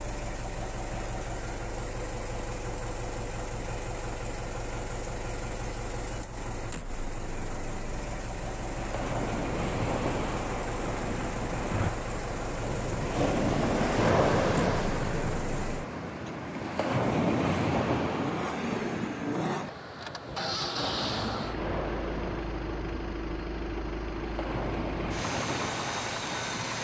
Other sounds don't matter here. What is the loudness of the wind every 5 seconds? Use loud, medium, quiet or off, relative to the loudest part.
off, medium, loud, loud, medium, medium.